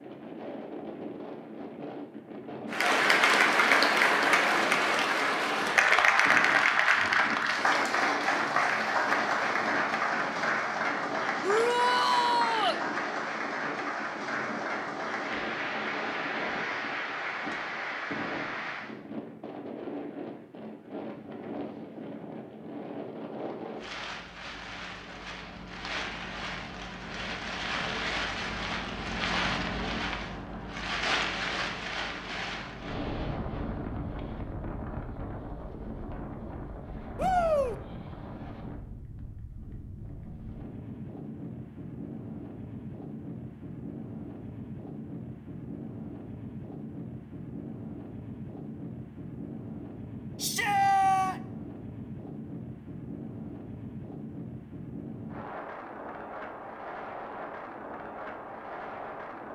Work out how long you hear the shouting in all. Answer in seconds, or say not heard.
3 s.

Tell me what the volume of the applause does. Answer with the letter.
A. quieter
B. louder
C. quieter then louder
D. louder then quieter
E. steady
A.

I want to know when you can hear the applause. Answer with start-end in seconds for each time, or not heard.
2.7-18.9.